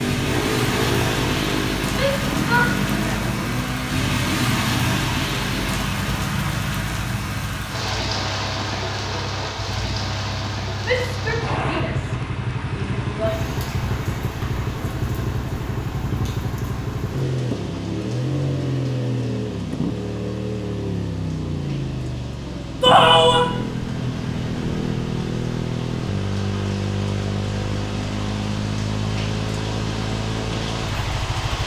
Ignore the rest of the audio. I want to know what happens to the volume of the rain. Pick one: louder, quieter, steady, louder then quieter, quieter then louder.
quieter then louder.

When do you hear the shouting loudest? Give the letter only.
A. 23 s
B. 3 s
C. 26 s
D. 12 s
A.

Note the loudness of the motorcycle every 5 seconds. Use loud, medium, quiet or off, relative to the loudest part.
loud, medium, loud, loud, loud, loud, loud.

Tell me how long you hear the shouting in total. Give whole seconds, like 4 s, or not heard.
4 s.